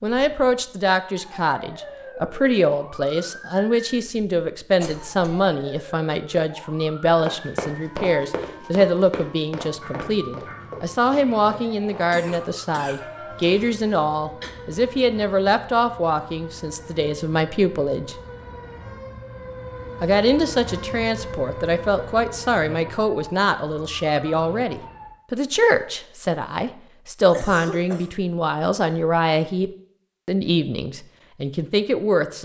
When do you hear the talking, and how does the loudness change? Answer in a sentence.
The talking can be heard from 0.0 to 18.1 s, at a steady volume; and from 20.0 to 32.4 s, at a steady volume.